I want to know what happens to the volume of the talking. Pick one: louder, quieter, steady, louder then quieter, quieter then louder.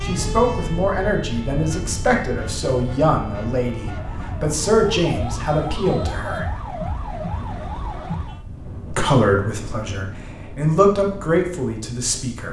steady.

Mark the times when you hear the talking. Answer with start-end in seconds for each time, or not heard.
0.0-6.5, 8.9-12.4.